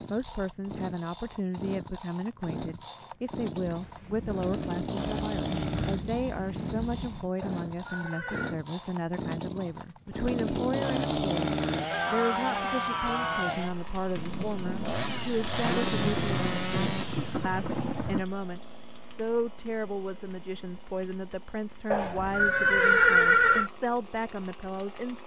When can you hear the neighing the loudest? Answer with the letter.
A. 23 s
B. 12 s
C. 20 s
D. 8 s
A.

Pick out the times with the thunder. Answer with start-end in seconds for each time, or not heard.
3.6-7.3, 14.2-18.2.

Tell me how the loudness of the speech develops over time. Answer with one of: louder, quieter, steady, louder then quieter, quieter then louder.
steady.